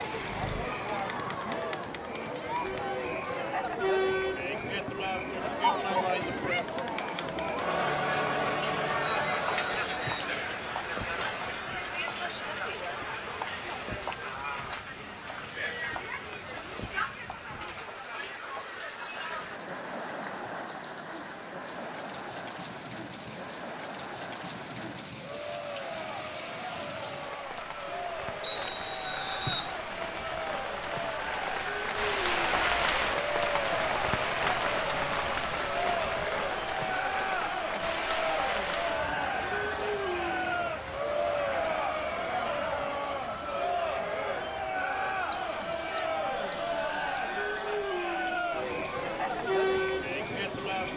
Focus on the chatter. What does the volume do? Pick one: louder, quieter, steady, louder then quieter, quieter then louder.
quieter then louder.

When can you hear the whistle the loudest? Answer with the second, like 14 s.
29 s.